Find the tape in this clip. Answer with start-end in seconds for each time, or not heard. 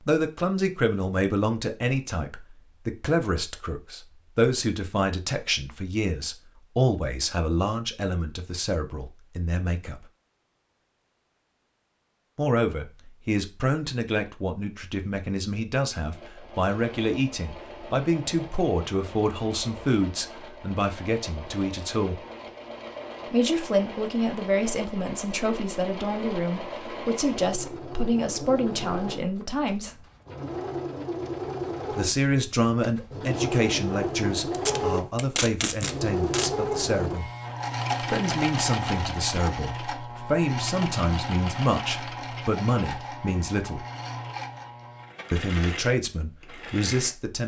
34.5-36.5.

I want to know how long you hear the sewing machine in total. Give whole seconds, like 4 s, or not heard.
31 s.